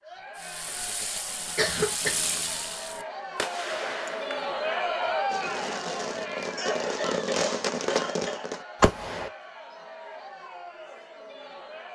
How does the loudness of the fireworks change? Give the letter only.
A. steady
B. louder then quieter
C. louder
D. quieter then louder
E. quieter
C.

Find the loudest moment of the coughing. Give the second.
2 s.